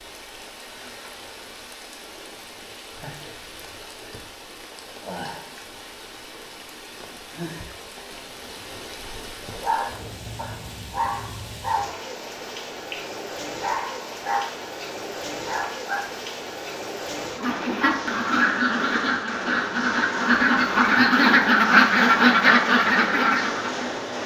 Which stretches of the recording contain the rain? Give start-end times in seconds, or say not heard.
0.0-24.2.